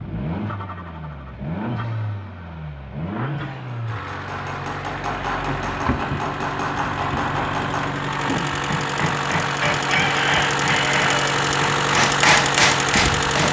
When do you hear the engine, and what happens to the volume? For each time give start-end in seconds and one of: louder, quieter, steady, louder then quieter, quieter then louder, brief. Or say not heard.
0.0-13.4 louder.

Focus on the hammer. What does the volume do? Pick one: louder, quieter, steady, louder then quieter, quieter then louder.
louder.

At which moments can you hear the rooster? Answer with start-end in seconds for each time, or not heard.
9.6-11.3.